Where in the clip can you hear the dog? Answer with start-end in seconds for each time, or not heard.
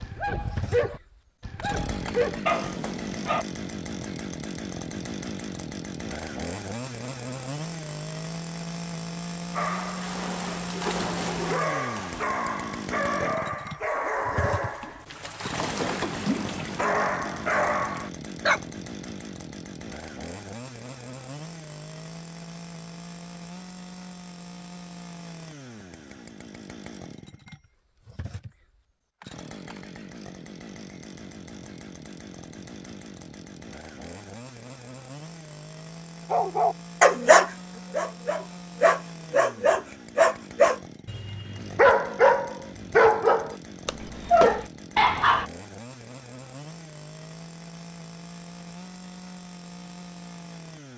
0.0-3.5, 9.6-18.6, 36.3-45.5.